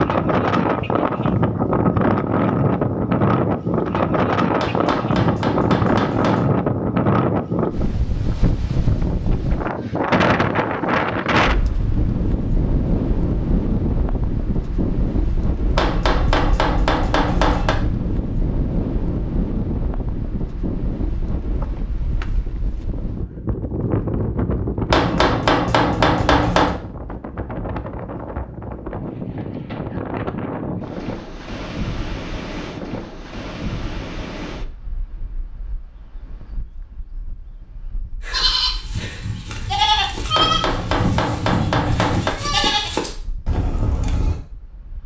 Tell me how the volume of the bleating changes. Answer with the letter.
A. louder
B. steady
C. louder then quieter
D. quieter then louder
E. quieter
C.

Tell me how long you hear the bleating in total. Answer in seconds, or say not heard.
6 s.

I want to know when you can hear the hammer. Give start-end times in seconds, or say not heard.
4.6-6.5, 15.8-17.8, 24.9-26.8, 40.4-42.3.